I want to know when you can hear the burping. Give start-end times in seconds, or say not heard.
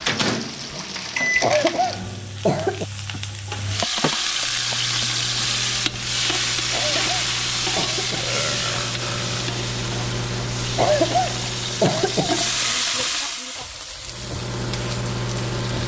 3.1-4.2, 8.2-9.6.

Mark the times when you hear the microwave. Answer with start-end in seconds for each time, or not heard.
0.0-2.4, 4.3-12.8, 14.1-15.8.